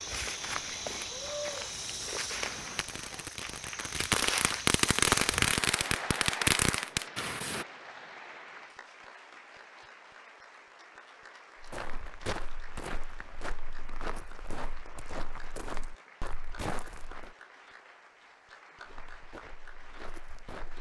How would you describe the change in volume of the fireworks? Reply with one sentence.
The volume of the fireworks goes up.